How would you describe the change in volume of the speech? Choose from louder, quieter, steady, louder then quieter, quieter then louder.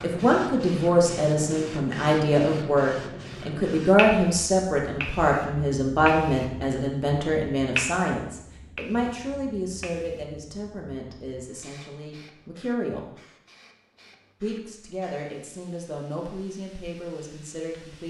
quieter.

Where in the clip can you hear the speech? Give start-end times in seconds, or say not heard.
0.0-13.1, 14.4-18.0.